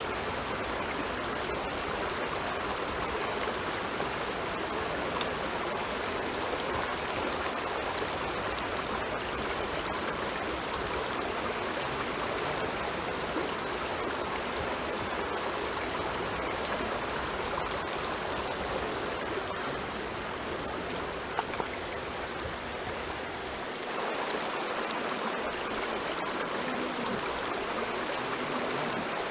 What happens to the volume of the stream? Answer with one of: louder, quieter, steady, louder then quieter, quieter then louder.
steady.